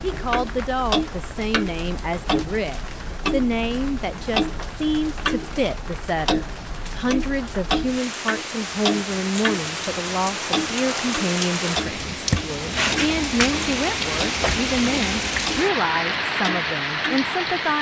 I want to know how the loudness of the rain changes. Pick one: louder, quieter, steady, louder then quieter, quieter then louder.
louder.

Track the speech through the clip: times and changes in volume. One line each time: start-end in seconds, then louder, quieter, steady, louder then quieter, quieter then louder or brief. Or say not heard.
0.0-17.7 steady.